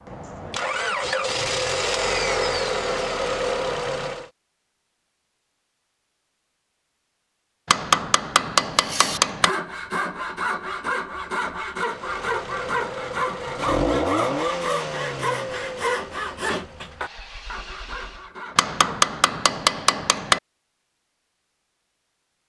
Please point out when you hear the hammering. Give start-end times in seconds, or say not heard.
7.7-9.6, 18.6-20.4.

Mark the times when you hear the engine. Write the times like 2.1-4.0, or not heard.
0.0-4.3, 11.8-18.3.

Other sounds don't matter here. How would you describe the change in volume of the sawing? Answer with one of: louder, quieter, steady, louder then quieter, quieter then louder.
quieter.